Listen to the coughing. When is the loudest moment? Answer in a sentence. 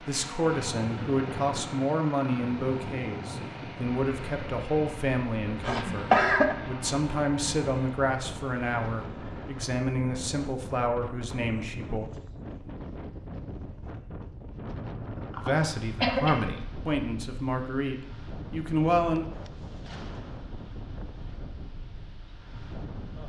The volume of the coughing peaks at 6 seconds.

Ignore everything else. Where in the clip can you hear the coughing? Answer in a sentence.
You can hear the coughing from 5.6 to 6.5 s and from 14.8 to 16.4 s.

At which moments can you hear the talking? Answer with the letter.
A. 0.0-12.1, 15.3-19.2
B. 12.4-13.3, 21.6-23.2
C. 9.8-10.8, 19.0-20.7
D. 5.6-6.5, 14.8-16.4
A.